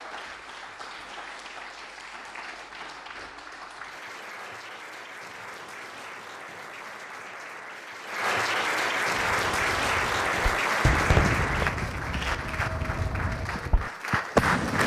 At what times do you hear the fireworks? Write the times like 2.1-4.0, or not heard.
9.2-14.8.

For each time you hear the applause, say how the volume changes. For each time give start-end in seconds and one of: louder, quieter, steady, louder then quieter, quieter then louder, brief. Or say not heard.
0.0-14.8 louder then quieter.